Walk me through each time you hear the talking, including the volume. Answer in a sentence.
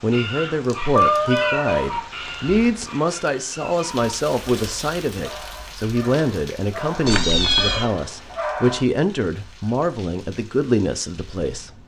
You can hear the talking from 0.0 to 11.7 s, at a steady volume.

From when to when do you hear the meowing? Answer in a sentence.
You can hear the meowing from 0.9 to 2.9 s and from 7.0 to 7.8 s.